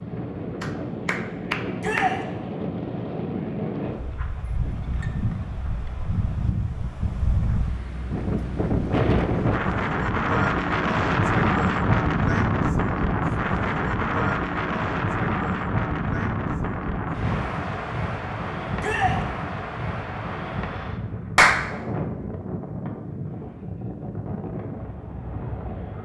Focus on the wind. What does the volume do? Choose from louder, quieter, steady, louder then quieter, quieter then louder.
louder then quieter.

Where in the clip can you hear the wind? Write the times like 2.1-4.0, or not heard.
0.0-26.0.